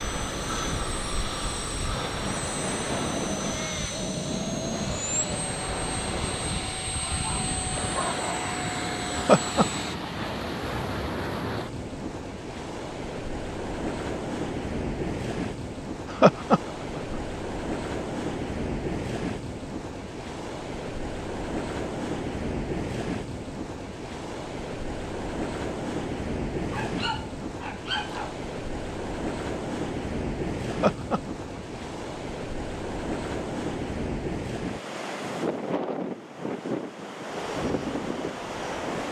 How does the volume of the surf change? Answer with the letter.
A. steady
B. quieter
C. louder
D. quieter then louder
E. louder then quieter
A.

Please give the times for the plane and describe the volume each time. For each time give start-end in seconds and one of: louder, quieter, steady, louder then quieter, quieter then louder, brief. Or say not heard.
0.0-9.9 steady
37.5-38.8 brief.